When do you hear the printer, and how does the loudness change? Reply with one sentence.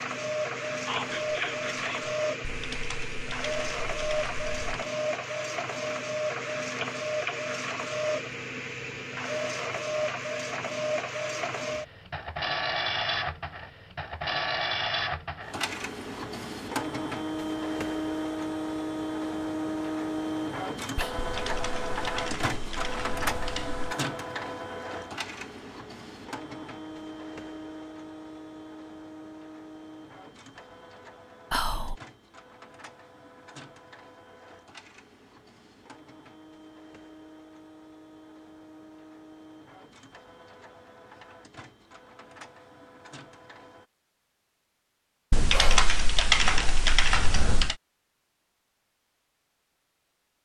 You can hear the printer from 0.0 to 43.9 s, getting quieter.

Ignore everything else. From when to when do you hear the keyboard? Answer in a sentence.
You can hear the keyboard from 2.5 to 4.8 s, from 21.1 to 23.9 s and from 45.3 to 47.8 s.